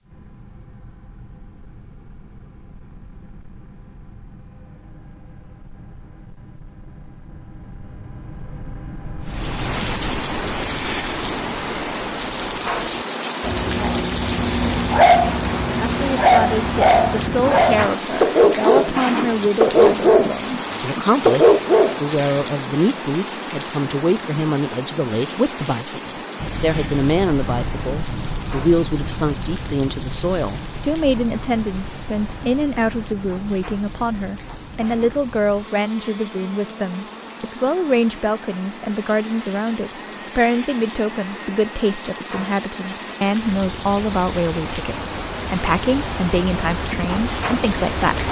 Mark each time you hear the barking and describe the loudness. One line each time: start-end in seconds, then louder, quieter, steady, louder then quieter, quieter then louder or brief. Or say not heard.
13.4-18.9 louder
19.6-20.4 brief
21.2-22.0 brief.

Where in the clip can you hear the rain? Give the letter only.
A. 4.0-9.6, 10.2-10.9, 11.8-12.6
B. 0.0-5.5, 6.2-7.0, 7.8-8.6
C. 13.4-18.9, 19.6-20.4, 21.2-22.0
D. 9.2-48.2
D.